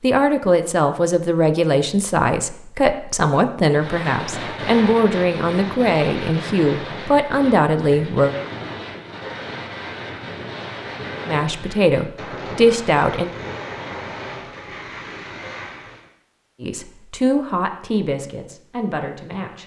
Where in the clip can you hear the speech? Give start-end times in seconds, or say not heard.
0.0-8.3, 11.2-13.3, 16.6-19.6.